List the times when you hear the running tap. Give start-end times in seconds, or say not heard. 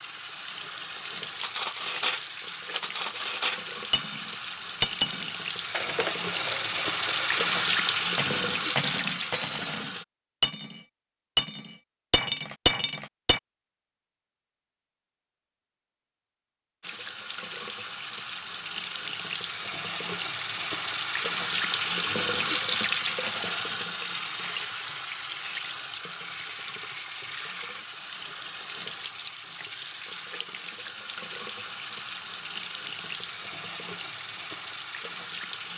0.0-10.1, 16.8-35.7.